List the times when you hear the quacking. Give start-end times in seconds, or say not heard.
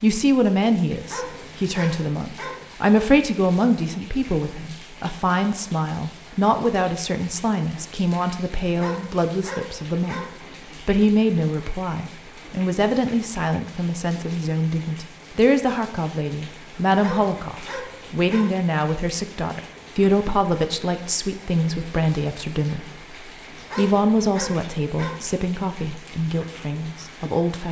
not heard.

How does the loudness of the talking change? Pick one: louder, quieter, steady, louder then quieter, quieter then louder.
steady.